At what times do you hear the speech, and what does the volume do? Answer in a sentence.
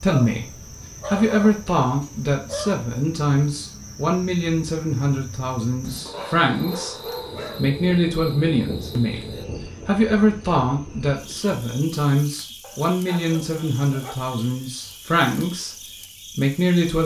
The speech can be heard from 0.0 to 17.0 s, at a steady volume.